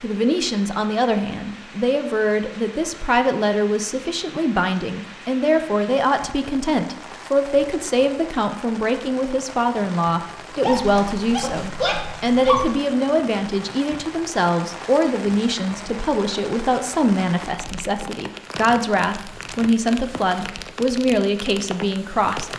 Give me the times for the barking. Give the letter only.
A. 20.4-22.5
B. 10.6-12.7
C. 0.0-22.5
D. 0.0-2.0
B.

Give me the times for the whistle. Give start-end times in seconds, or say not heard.
not heard.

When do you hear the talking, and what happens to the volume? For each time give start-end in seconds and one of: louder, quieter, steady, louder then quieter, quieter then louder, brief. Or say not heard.
0.0-22.5 steady.